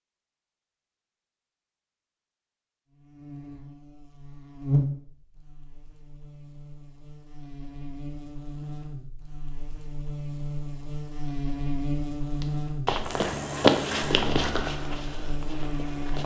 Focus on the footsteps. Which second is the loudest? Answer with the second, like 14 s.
14 s.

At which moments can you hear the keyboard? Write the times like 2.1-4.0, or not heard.
not heard.